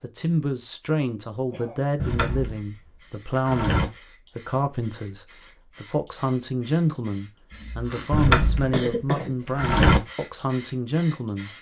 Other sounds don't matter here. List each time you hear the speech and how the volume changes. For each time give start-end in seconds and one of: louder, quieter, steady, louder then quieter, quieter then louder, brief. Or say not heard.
0.0-11.5 steady.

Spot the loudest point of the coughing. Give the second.
9 s.